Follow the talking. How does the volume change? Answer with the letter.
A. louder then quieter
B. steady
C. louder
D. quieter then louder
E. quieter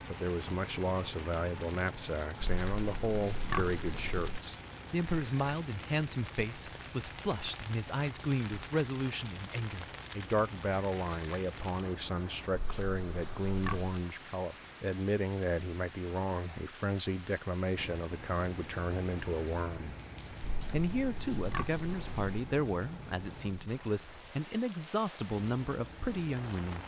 B.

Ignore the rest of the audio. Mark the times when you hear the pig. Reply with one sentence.
You can hear the pig from 2.4 to 4.4 s, from 12.5 to 13.9 s and from 20.4 to 22.4 s.